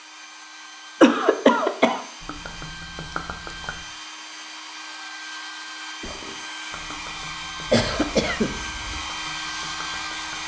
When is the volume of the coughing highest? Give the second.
1 s.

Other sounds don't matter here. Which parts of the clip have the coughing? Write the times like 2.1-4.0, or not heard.
1.0-2.0, 7.7-9.0.